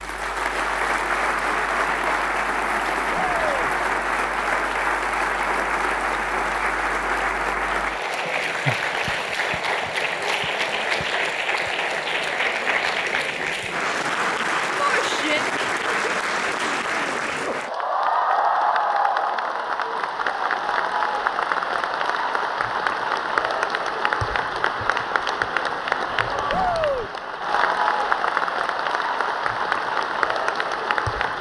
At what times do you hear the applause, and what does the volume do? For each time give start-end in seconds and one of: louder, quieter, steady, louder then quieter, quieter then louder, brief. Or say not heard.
0.0-31.3 steady.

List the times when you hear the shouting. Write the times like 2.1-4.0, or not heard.
3.1-3.7, 14.8-15.4, 26.5-27.1.